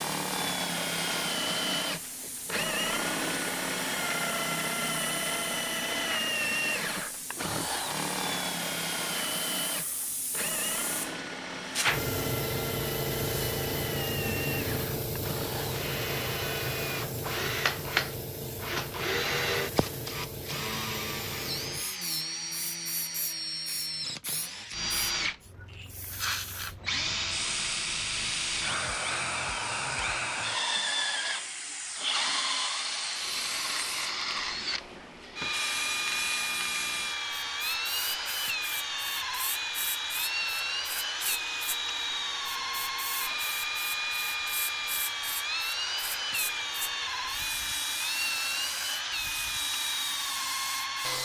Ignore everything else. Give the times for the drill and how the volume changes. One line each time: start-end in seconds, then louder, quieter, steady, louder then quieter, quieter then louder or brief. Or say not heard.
0.0-51.2 steady.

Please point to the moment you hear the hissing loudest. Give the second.
12 s.